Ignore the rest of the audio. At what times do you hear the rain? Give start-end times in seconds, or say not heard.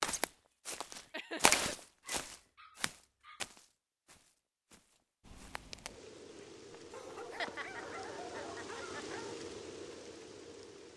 5.2-10.9.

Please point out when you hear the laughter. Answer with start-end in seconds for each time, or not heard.
1.1-1.8, 7.0-9.1.